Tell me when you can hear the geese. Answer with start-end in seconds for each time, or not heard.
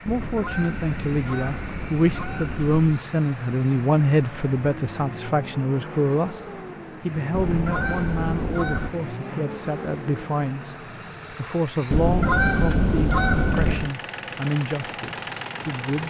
0.1-3.0, 7.3-8.9, 11.9-13.9.